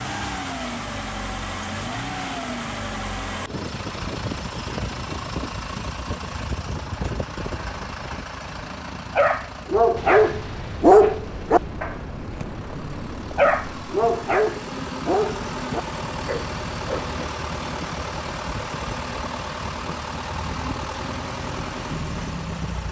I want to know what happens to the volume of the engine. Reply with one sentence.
The loudness of the engine goes down, then up.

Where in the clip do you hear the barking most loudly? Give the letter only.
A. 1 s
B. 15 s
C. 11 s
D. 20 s
C.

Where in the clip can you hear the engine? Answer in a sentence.
The engine can be heard from 0.0 to 22.8 s.